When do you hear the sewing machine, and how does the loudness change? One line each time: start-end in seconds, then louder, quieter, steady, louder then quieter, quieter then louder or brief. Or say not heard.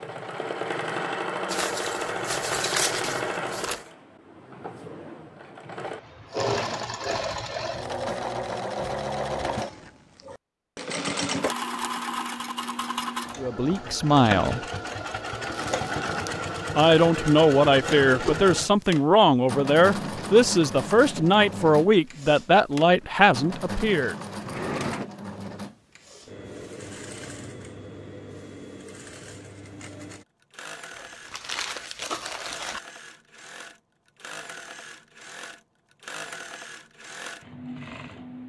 0.0-38.4 quieter.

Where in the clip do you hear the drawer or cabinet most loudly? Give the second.
25 s.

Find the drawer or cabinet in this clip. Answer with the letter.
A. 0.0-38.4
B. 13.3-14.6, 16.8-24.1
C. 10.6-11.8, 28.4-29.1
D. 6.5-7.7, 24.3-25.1
D.